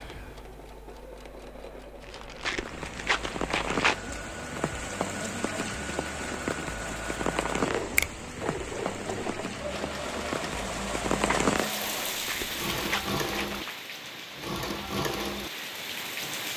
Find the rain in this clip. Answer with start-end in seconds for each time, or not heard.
2.5-16.5.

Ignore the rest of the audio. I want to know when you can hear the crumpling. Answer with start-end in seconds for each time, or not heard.
2.0-4.0, 12.1-13.8.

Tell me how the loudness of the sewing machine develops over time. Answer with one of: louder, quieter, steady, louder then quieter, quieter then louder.
louder.